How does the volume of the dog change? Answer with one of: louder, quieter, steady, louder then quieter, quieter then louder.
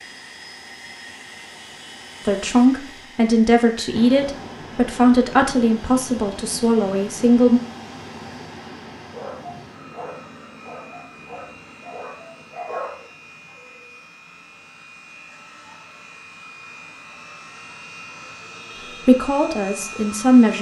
louder.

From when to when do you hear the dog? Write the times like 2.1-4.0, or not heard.
9.1-13.8.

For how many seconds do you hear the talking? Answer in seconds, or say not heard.
7 s.